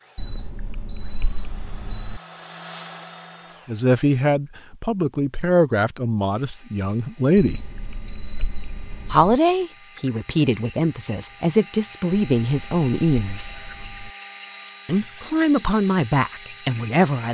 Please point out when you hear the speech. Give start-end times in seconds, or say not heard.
3.6-7.7, 9.1-13.5, 14.8-17.2.